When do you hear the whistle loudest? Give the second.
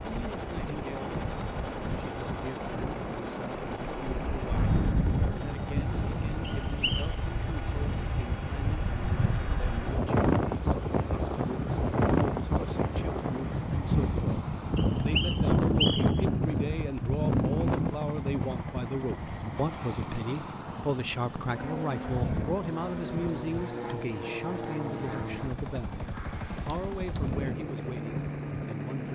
16 s.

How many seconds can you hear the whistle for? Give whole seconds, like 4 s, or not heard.
2 s.